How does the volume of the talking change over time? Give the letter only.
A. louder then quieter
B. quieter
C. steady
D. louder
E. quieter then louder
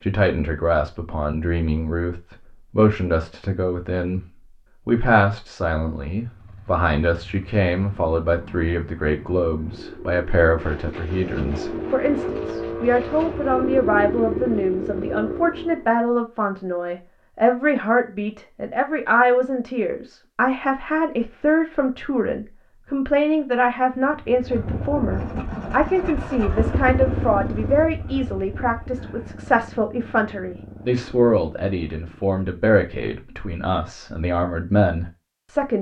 C.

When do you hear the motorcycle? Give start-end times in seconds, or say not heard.
6.2-15.9, 24.2-32.4.